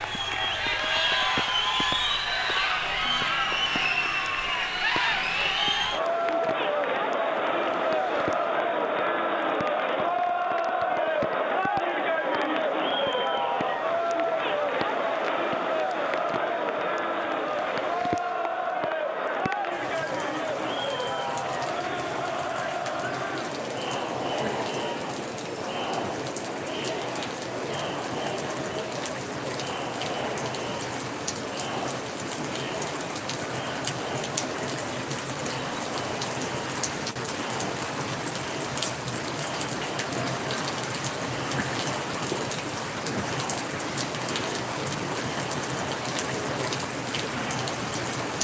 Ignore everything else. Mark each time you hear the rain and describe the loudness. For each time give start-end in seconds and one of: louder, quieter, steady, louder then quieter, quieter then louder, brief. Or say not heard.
0.1-48.3 louder.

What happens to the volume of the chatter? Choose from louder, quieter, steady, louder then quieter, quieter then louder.
quieter.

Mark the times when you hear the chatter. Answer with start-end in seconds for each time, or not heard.
0.0-48.1.